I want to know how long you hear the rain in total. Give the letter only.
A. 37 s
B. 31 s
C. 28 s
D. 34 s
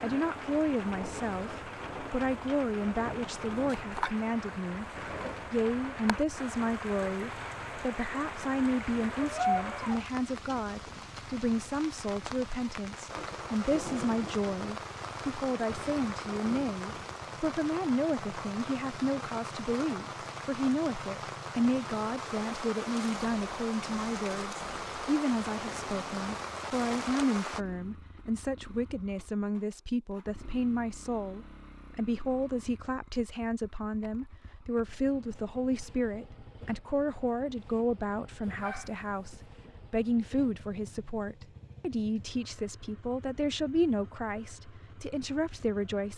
C.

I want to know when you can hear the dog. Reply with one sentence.
The dog can be heard from 9.2 to 10.1 s and from 38.6 to 39.4 s.